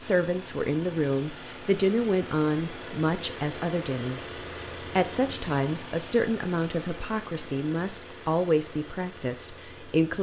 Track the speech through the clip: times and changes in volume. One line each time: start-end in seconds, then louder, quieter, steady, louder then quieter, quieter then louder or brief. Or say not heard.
0.0-10.1 steady.